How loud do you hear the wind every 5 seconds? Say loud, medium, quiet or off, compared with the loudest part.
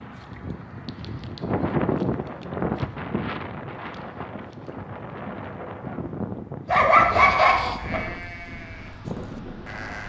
loud, medium.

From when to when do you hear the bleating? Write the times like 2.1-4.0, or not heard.
7.2-10.0.